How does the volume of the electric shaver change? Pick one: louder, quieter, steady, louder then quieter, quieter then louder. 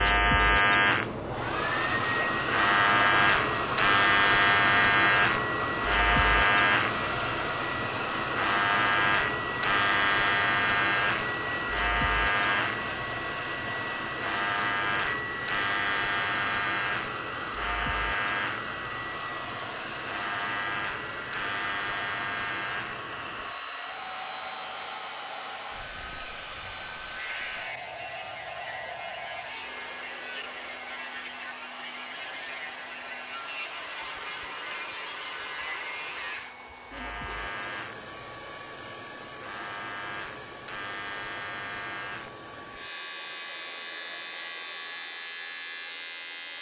quieter.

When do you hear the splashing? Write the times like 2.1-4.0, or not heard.
not heard.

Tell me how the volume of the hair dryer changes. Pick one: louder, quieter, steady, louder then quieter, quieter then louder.
quieter.